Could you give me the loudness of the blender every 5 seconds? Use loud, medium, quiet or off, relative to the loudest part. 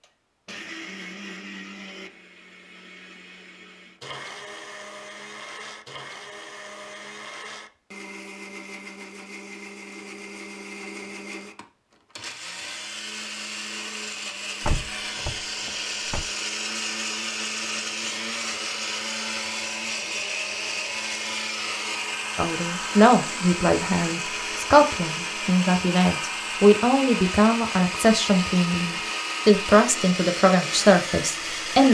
medium, medium, medium, loud, loud, loud, loud.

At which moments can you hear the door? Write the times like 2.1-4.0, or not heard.
14.6-16.2.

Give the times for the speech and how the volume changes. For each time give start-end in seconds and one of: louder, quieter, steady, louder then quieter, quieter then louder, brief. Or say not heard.
22.4-31.8 steady.